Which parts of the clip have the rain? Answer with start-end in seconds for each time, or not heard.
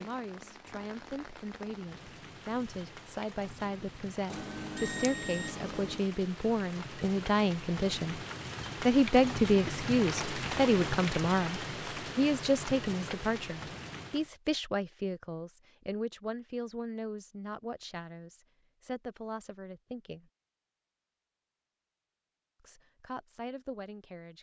0.0-14.3.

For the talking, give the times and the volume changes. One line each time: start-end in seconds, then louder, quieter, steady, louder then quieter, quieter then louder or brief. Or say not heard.
0.0-8.2 louder
8.8-20.3 quieter
22.6-24.3 brief.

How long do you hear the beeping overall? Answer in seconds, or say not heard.
2 s.